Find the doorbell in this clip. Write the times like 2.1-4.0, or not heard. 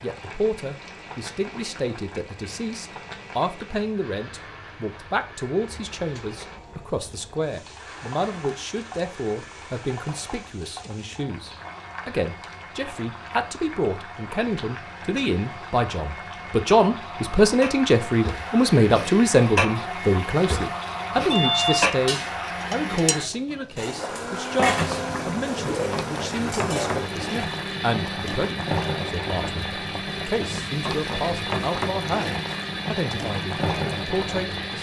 21.3-21.9.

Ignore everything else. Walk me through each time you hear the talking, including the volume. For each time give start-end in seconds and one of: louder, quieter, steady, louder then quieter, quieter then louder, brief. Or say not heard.
0.0-34.7 louder then quieter.